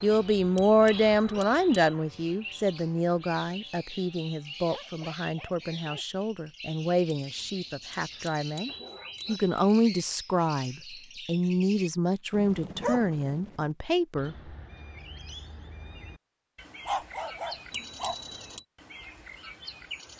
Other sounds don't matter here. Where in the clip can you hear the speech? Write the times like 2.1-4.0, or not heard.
0.0-14.5.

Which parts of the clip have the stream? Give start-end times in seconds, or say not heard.
not heard.